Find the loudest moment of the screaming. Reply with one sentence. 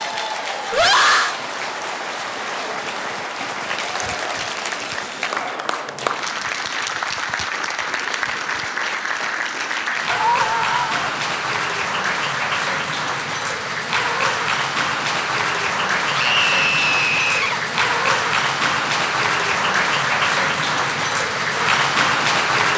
The volume of the screaming peaks at 1 second.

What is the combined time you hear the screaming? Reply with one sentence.
You can hear the screaming for 3 seconds altogether.